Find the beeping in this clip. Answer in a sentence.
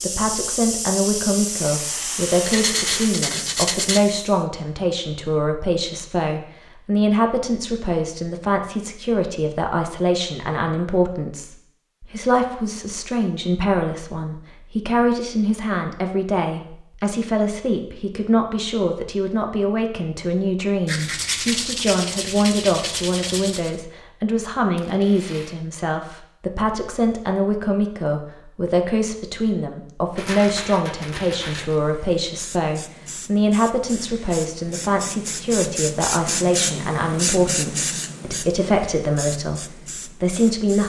The beeping can't be heard in this clip.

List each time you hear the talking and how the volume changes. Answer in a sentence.
You can hear the talking from 0.0 to 40.8 s, at a steady volume.